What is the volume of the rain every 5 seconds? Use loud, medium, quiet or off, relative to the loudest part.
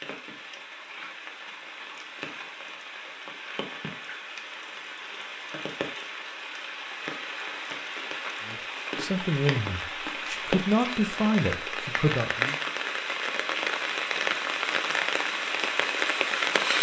quiet, medium, loud, loud.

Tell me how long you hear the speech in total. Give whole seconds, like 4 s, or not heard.
4 s.